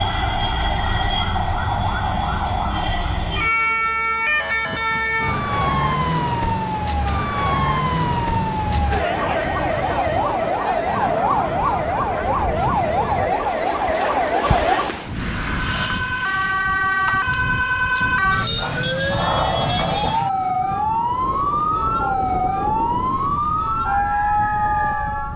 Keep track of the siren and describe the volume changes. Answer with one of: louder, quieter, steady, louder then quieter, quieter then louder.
steady.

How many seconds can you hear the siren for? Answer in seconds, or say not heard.
25 s.